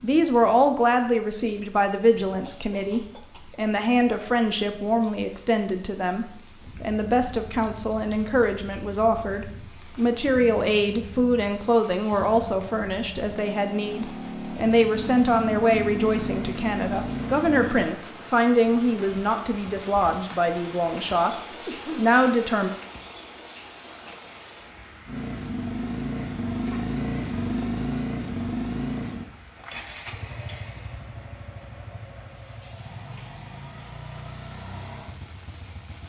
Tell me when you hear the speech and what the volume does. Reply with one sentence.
You can hear the speech from 0.0 to 22.7 s, at a steady volume.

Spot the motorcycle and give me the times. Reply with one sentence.
You can hear the motorcycle from 6.6 to 17.9 s and from 25.1 to 36.0 s.